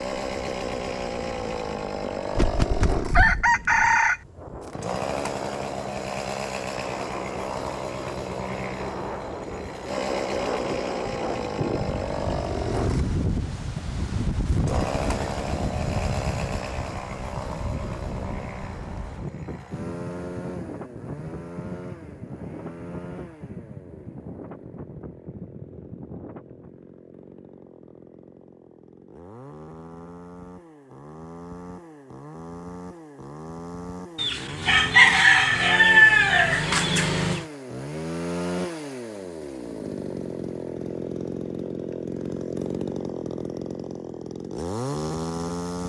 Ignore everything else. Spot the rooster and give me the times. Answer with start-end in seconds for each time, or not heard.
2.4-4.2, 34.1-37.5.